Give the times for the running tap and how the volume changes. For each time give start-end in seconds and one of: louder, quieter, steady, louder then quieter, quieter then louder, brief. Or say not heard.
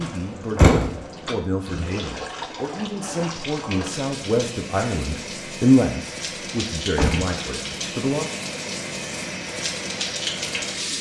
0.0-10.9 louder.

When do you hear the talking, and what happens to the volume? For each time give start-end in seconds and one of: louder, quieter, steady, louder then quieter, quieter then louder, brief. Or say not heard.
0.0-8.3 louder then quieter.